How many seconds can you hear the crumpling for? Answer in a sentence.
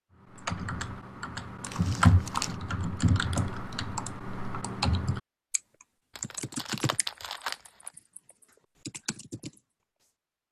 The crumpling can be heard for 3 seconds in total.